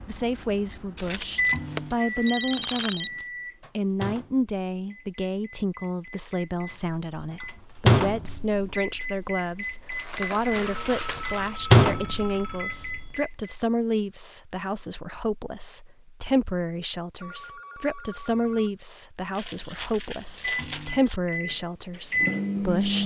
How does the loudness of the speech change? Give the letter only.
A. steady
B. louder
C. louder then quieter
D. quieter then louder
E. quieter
A.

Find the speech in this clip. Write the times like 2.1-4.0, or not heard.
0.1-23.0.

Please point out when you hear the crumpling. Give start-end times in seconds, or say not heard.
0.9-3.0, 9.9-11.5, 19.4-21.2.